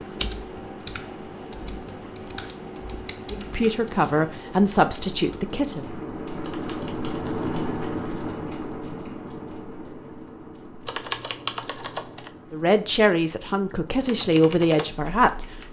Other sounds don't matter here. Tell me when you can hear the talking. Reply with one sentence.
You can hear the talking from 3.3 to 5.8 s and from 12.5 to 15.4 s.